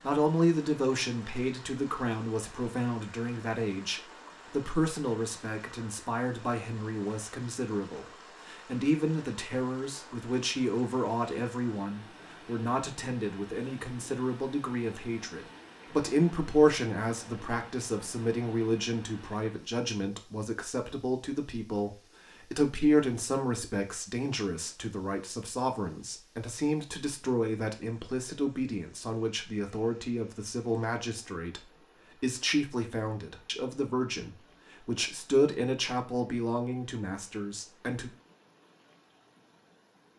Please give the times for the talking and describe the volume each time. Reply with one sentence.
You can hear the talking from 0.0 to 38.1 s, at a steady volume.